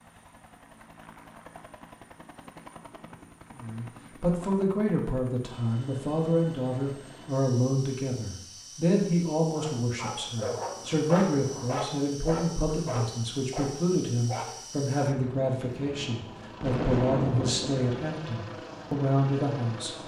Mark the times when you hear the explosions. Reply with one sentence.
You can hear the explosions from 16.6 to 17.9 s.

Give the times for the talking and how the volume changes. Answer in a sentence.
The talking can be heard from 3.5 to 19.9 s, at a steady volume.